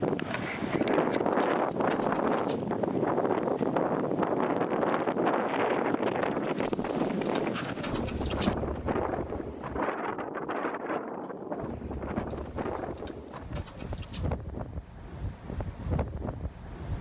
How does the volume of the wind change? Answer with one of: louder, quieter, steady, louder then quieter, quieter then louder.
quieter.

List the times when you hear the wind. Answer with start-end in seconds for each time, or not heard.
0.0-16.9.